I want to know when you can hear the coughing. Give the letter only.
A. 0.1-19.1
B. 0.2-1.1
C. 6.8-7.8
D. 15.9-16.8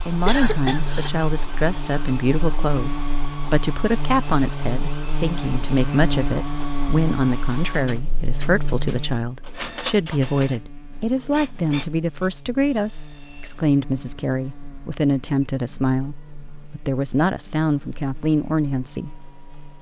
B.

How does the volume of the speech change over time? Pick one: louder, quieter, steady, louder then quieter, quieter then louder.
steady.